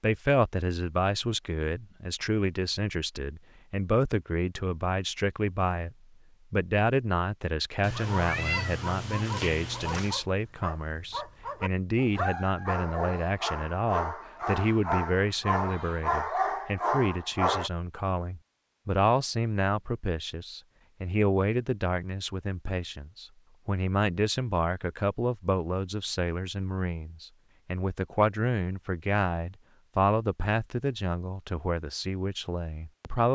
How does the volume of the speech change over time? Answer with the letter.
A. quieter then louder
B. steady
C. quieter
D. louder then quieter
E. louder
B.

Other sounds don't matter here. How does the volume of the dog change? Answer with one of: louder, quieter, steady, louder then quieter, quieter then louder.
louder.